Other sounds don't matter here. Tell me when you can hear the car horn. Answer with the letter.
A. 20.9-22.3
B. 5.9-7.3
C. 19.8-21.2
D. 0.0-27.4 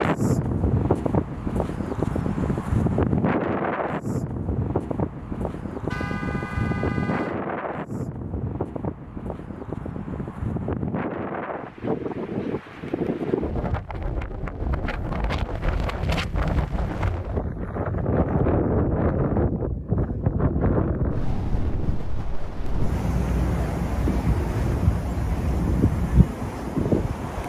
B.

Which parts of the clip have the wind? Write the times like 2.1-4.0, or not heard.
0.0-27.4.